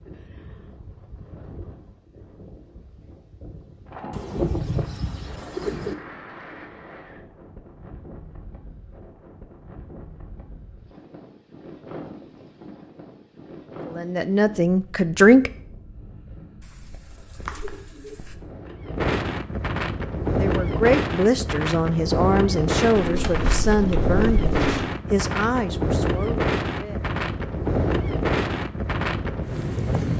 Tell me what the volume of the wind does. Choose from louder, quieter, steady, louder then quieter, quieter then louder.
louder.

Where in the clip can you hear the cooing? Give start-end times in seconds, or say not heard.
4.1-6.0, 16.6-18.4, 22.9-24.8.